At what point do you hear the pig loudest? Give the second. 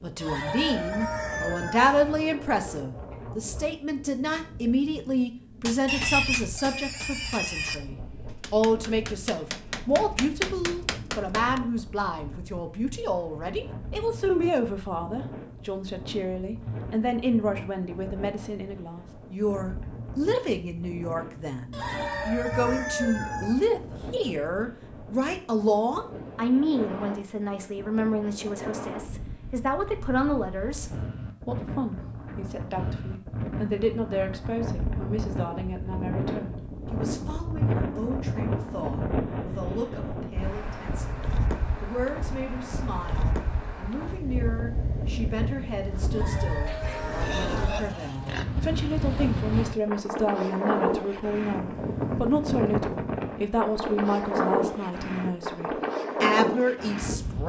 6 s.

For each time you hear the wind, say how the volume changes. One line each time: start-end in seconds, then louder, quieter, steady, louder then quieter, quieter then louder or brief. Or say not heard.
0.0-57.4 louder.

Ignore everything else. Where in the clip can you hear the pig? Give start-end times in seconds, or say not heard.
5.8-7.8, 46.6-48.5.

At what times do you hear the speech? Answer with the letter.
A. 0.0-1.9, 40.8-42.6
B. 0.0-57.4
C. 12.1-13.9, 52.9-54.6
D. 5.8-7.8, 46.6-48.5
B.